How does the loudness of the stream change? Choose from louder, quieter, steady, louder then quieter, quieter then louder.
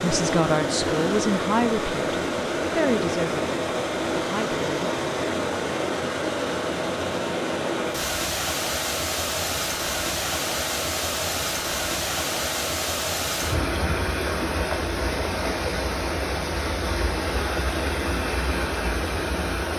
steady.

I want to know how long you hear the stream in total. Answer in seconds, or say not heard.
20 s.